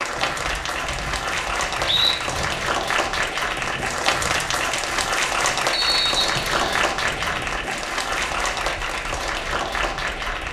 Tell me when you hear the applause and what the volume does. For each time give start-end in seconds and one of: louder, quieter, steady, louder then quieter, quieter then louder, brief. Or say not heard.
0.0-10.4 steady.